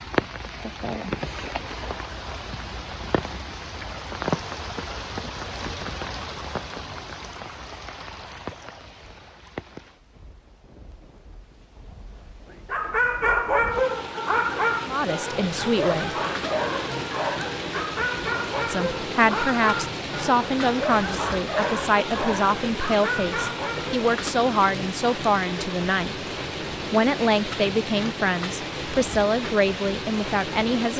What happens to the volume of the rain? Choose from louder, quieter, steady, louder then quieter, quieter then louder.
quieter then louder.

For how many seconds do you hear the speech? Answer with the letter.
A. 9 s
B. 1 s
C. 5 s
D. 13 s
D.